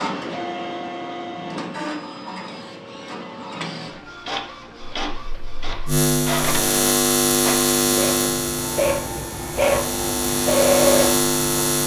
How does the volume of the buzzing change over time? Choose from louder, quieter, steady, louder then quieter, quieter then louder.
quieter then louder.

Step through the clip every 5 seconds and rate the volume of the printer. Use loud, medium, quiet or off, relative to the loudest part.
medium, medium, loud.